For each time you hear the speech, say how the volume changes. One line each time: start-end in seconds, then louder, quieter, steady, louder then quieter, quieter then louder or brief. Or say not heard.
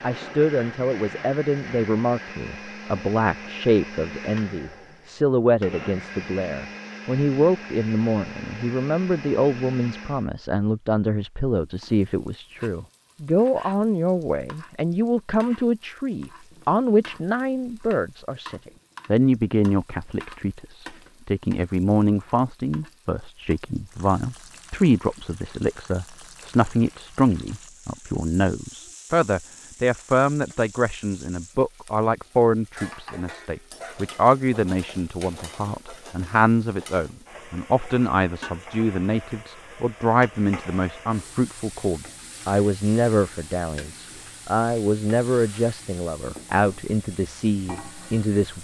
0.0-48.5 steady.